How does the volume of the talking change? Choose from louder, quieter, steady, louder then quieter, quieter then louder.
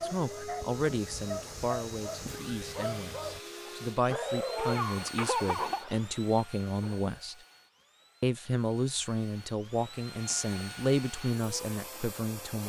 steady.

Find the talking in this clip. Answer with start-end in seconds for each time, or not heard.
0.0-7.3, 8.2-12.6.